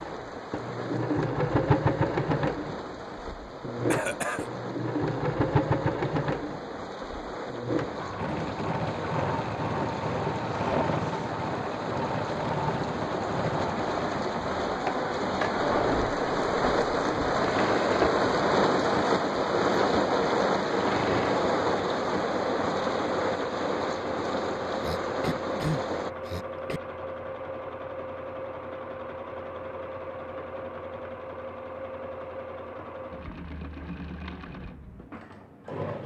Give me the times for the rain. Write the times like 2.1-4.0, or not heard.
0.0-26.1.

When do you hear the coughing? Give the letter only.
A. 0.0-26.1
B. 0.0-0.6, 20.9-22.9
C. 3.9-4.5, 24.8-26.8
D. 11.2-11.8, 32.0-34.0
C.